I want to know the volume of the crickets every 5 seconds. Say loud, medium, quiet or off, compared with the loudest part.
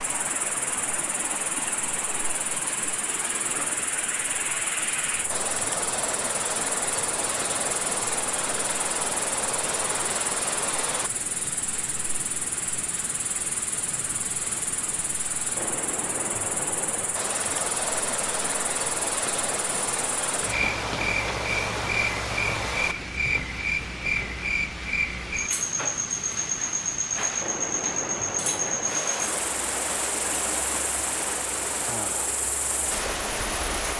medium, medium, medium, medium, loud, loud, medium.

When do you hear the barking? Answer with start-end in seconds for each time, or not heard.
not heard.